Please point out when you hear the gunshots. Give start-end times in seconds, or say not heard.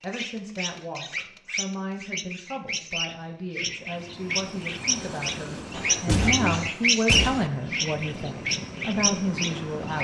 5.7-7.5.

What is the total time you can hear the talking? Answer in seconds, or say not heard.
10 s.